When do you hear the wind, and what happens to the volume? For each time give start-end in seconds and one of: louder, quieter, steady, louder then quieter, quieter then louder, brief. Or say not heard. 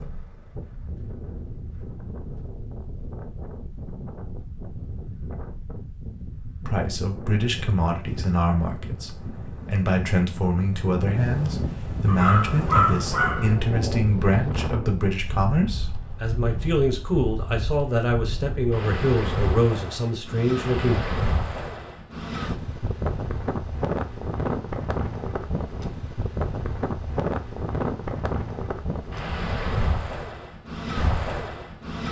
0.0-32.0 louder.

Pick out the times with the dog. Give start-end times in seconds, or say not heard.
12.1-14.1.